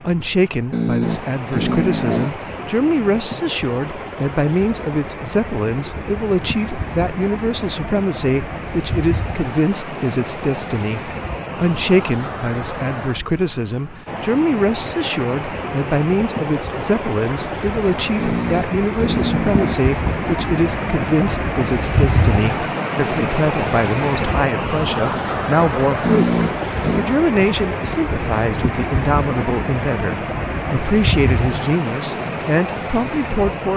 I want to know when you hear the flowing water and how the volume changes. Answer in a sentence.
The flowing water can be heard from 0.0 to 33.7 s, getting louder.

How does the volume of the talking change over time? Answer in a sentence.
The loudness of the talking stays about the same.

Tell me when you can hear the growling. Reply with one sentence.
You can hear the growling from 0.7 to 2.4 s, from 18.1 to 19.9 s and from 26.0 to 27.1 s.